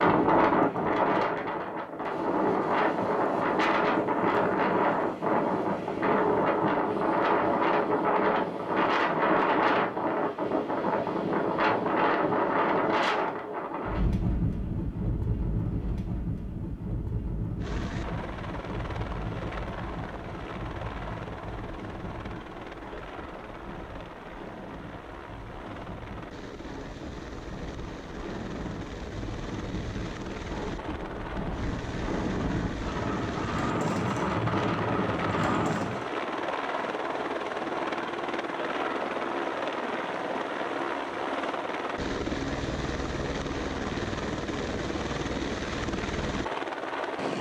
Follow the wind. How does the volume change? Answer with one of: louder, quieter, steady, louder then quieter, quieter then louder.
quieter then louder.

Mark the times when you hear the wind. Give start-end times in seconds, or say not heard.
0.0-36.1.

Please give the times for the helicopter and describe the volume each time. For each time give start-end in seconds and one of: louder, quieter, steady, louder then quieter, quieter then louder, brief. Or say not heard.
17.6-47.3 louder.